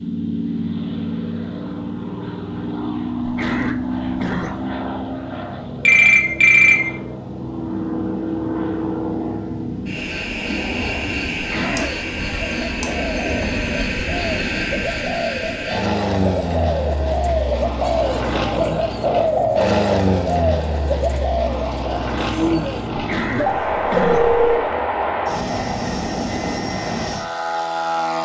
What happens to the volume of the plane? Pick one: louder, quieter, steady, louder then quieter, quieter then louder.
steady.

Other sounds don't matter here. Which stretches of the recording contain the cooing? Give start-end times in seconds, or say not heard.
11.6-22.9.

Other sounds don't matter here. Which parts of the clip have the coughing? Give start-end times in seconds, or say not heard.
3.2-4.7, 11.3-11.9, 22.9-24.4.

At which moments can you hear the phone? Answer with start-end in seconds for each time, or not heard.
5.8-6.8, 11.8-13.8, 23.4-24.8.